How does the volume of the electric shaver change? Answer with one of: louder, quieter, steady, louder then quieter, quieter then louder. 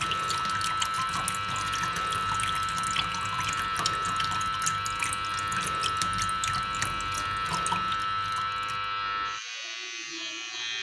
steady.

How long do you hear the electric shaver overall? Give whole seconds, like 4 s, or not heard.
11 s.